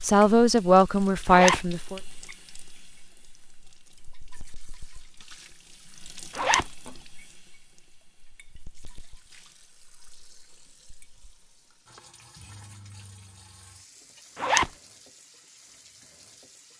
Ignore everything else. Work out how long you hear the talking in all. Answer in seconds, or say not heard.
2 s.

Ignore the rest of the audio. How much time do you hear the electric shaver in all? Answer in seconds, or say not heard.
not heard.